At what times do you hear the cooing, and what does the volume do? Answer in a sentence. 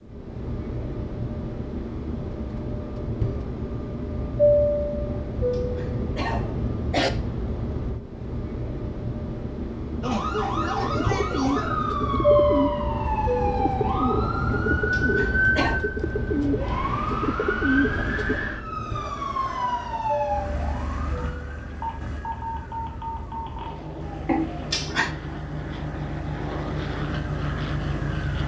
You can hear the cooing from 10.8 to 18.4 s, at a steady volume.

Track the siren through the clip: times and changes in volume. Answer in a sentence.
You can hear the siren from 10.0 to 28.4 s, getting quieter.